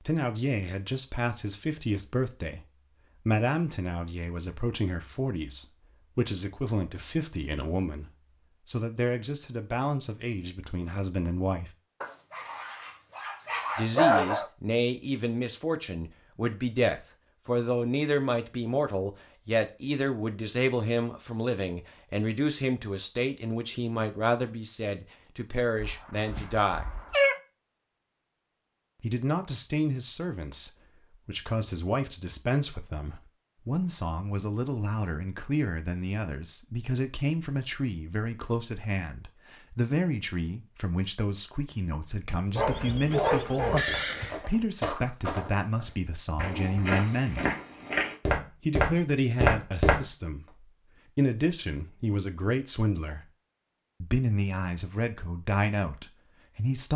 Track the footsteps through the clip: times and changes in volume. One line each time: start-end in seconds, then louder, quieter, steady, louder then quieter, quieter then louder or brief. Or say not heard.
42.6-50.0 louder.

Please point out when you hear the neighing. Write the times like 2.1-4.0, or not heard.
43.8-44.5.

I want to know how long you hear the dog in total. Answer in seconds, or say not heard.
5 s.